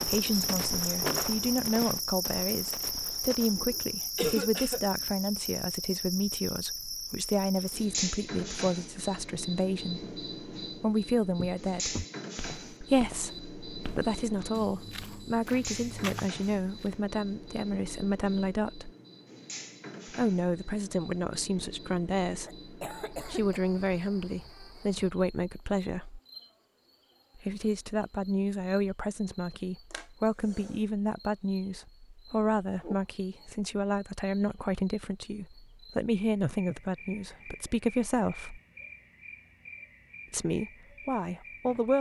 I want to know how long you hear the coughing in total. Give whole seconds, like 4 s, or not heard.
3 s.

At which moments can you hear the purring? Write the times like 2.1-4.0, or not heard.
not heard.